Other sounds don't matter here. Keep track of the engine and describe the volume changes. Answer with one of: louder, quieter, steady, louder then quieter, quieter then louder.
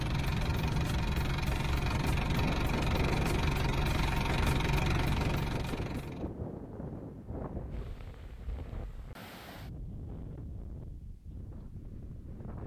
steady.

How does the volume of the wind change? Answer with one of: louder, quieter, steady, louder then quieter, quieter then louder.
quieter.